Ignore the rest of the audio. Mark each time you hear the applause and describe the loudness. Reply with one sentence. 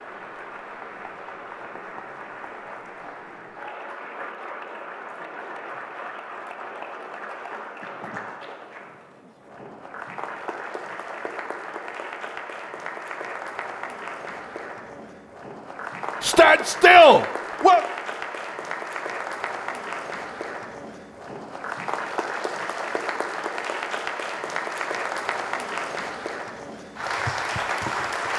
You can hear the applause from 0.0 to 28.3 s, getting louder.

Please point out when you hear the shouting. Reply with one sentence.
You can hear the shouting from 16.2 to 17.8 s.